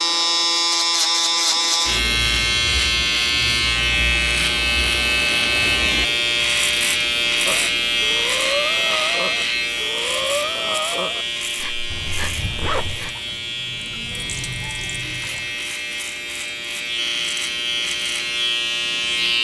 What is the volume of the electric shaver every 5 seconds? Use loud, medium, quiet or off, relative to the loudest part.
loud, loud, medium, medium.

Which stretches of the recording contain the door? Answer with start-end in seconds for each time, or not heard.
not heard.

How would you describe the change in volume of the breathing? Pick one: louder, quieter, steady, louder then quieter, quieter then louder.
quieter.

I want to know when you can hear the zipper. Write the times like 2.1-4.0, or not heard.
11.9-13.0.